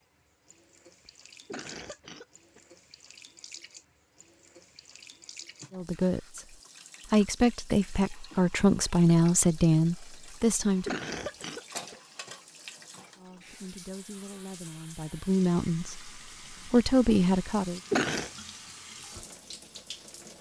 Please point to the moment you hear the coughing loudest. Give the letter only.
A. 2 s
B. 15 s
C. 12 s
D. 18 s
D.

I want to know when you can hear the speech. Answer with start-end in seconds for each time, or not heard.
5.7-11.0, 13.2-17.8.